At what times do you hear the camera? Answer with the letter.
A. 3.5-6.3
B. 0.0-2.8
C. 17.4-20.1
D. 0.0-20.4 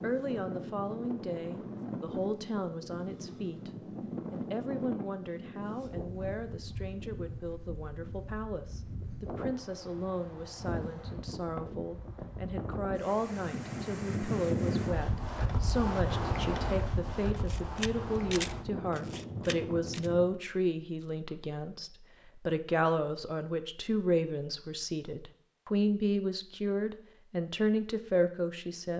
C.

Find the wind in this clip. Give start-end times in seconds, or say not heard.
0.0-20.4.